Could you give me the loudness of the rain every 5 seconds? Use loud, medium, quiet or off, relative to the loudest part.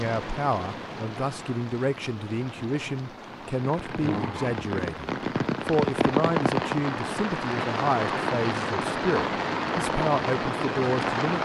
medium, loud, loud.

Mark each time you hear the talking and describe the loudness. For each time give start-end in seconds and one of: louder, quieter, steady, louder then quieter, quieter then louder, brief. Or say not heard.
0.0-11.4 steady.